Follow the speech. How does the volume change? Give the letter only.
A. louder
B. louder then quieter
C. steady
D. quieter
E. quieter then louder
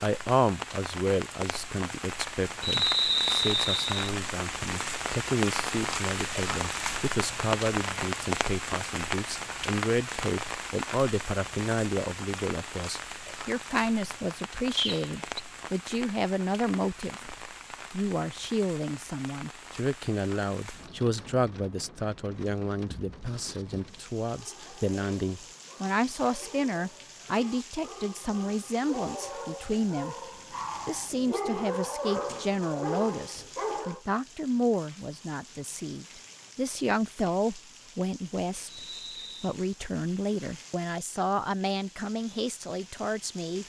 C.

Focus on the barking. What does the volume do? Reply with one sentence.
The volume of the barking goes up.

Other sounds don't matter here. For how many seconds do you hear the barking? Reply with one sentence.
The barking can be heard for 10 seconds in total.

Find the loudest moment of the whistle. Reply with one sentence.
The volume of the whistle peaks at 3 seconds.